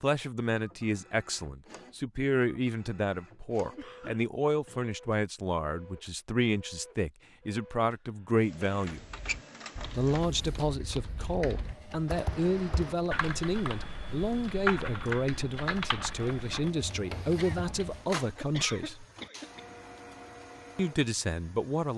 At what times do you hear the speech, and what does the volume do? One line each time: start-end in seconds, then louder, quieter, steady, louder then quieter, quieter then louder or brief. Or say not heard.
0.0-9.0 steady
9.9-19.1 steady
20.8-21.9 brief.